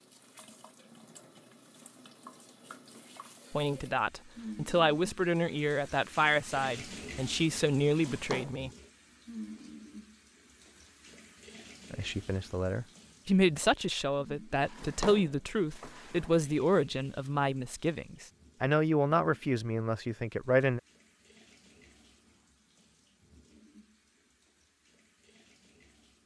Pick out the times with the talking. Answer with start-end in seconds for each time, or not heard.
3.5-8.7, 11.9-20.8.